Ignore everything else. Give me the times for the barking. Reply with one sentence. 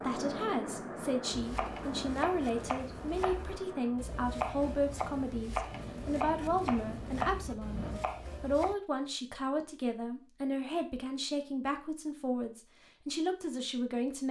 You can't hear the barking here.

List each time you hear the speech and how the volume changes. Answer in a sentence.
You can hear the speech from 0.0 to 14.2 s, at a steady volume.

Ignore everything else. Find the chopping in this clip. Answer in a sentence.
The chopping can be heard from 1.3 to 8.8 s.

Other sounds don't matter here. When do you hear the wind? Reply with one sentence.
The wind can be heard from 0.0 to 8.1 s.